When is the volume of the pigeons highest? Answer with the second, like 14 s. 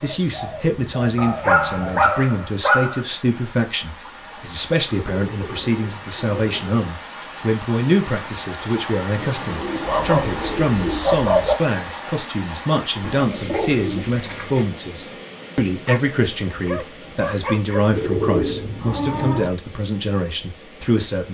18 s.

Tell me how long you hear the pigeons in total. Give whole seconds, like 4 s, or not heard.
9 s.